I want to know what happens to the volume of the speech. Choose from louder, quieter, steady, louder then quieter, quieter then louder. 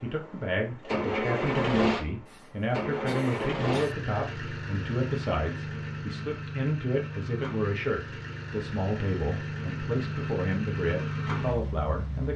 steady.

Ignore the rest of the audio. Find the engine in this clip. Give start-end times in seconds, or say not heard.
0.0-12.3.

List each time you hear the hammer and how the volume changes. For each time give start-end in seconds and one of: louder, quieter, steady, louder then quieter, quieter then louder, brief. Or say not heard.
not heard.